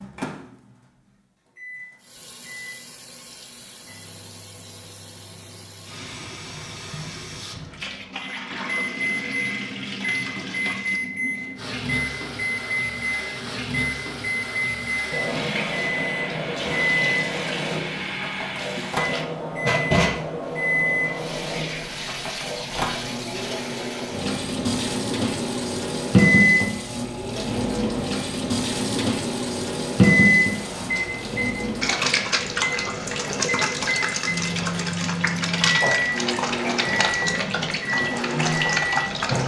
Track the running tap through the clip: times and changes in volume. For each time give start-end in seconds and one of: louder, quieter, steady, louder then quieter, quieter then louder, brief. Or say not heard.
2.0-39.4 louder.